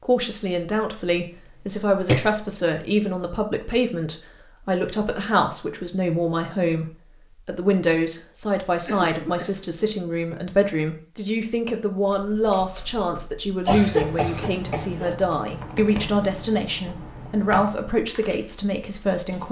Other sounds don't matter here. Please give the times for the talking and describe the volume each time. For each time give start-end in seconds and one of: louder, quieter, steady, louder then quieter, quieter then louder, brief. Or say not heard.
0.0-19.4 steady.